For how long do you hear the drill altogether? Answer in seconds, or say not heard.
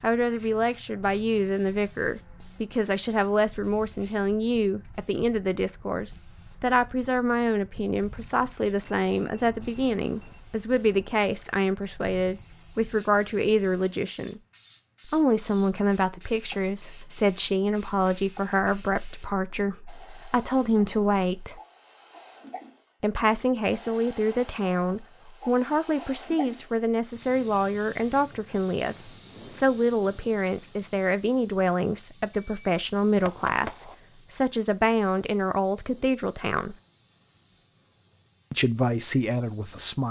not heard.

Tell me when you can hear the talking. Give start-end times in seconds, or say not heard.
0.0-14.4, 15.1-21.6, 23.0-36.8, 38.5-40.0.